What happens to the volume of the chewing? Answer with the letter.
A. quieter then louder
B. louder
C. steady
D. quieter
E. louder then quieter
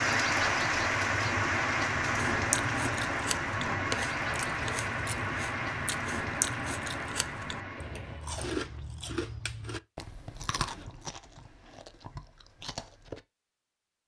D.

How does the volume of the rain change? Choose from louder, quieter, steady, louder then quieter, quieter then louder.
quieter.